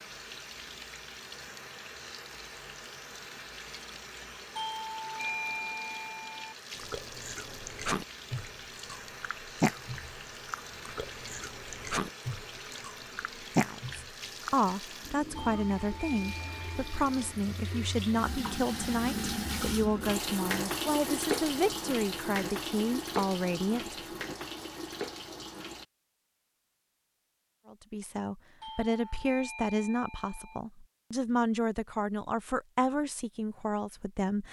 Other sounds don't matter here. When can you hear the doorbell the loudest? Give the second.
5 s.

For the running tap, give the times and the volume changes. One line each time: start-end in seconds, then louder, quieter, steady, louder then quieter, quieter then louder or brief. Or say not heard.
0.0-25.9 louder.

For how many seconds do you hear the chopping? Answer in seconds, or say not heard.
not heard.